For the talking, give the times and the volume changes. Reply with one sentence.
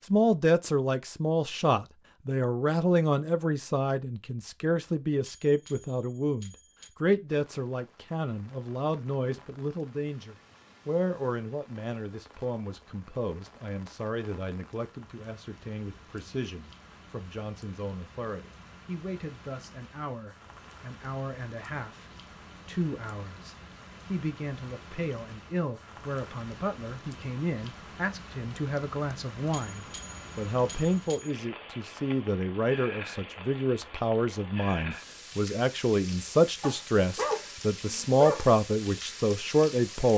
The talking can be heard from 0.1 to 40.1 s, getting quieter then louder.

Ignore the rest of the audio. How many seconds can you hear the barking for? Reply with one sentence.
You can hear the barking for 2 seconds altogether.